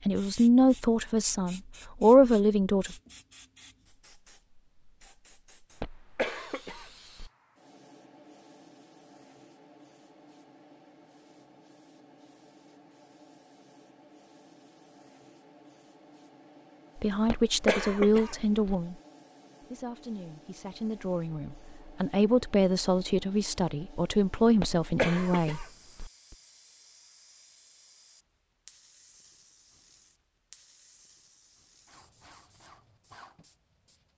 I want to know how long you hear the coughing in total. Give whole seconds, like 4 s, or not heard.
5 s.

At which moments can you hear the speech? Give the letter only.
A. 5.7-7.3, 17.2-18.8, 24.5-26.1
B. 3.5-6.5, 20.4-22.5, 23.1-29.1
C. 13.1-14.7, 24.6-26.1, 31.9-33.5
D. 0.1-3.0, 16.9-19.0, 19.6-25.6
D.